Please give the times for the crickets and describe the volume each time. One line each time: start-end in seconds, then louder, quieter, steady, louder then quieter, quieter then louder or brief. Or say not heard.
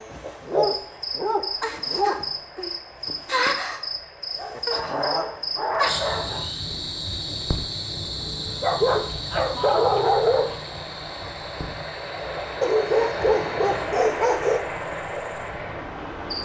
0.0-16.3 quieter.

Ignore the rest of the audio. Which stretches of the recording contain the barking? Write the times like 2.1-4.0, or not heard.
0.4-2.2, 4.3-6.5, 8.6-10.6, 12.6-14.7.